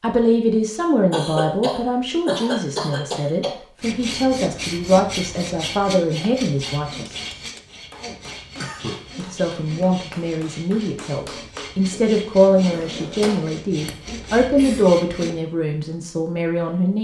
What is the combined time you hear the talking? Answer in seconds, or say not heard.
15 s.